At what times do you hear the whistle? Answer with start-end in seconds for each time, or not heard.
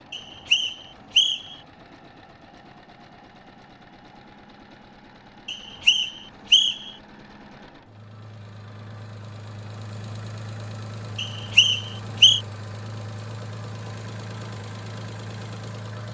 0.1-1.6, 5.5-6.9, 11.2-12.4.